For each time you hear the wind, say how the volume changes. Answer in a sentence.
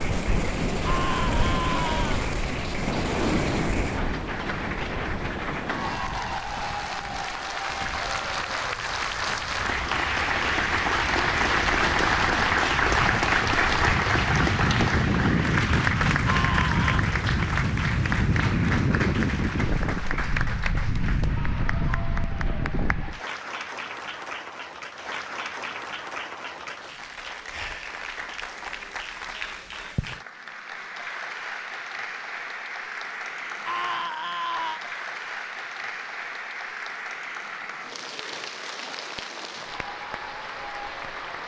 You can hear the wind from 0.0 to 23.2 s, getting quieter then louder.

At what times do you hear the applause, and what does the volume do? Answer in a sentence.
You can hear the applause from 0.0 to 41.4 s, getting louder then quieter.